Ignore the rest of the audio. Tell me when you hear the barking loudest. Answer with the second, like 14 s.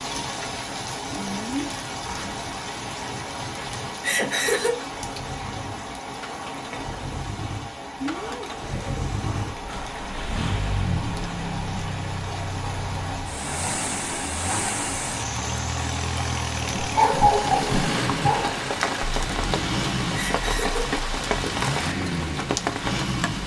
17 s.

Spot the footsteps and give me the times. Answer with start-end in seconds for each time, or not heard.
not heard.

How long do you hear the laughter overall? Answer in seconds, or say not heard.
2 s.